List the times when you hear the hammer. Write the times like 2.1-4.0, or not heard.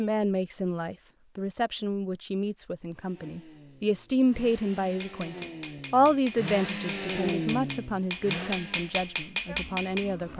4.8-10.2.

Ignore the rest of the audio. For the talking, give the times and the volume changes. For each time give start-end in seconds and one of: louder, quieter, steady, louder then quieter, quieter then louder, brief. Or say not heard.
0.0-10.3 louder then quieter.